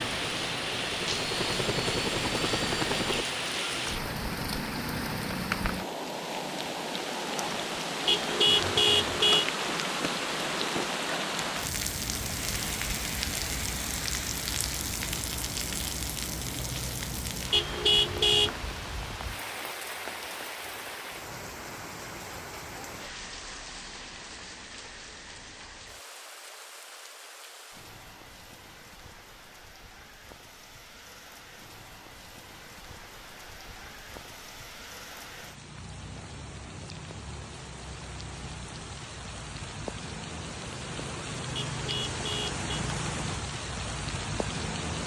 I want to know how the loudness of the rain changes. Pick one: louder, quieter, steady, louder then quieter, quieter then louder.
quieter then louder.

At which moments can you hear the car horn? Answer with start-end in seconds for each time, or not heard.
8.1-9.4, 17.5-18.6, 41.5-42.6.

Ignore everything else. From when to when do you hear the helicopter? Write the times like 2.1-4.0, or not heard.
0.0-3.2.